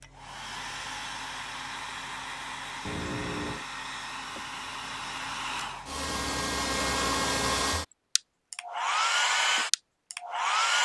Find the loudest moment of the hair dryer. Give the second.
9 s.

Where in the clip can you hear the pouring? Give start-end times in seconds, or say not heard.
2.9-3.6, 6.0-7.7.